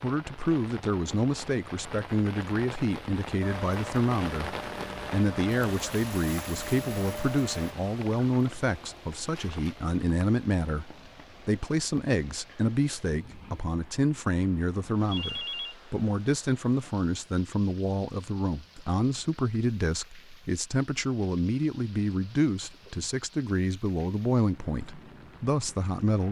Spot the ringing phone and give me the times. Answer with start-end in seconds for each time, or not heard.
15.1-15.8.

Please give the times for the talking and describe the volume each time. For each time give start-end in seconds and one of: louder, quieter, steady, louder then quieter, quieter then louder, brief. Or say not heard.
0.0-26.2 steady.